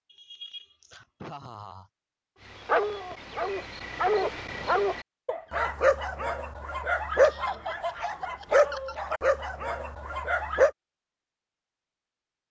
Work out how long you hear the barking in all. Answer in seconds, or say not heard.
8 s.